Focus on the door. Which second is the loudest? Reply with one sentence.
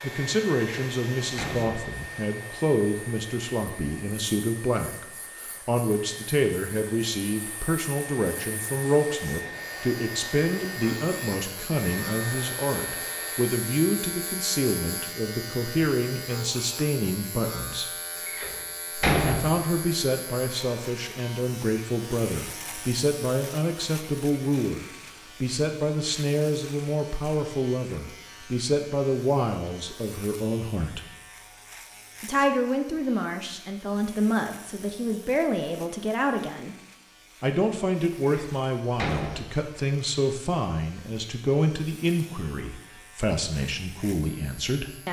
The volume of the door peaks at 19 seconds.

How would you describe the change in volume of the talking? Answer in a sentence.
The volume of the talking stays about the same.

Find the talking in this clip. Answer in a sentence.
The talking can be heard from 0.0 to 17.9 s, from 19.2 to 31.0 s, from 32.2 to 36.8 s and from 37.4 to 45.0 s.